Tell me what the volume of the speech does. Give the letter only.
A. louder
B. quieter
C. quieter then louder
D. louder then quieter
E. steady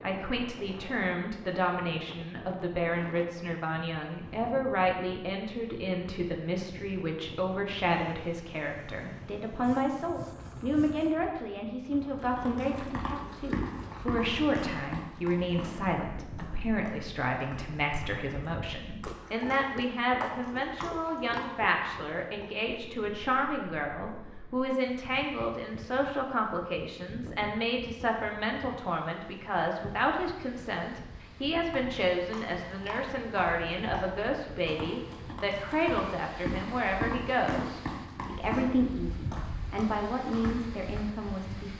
E.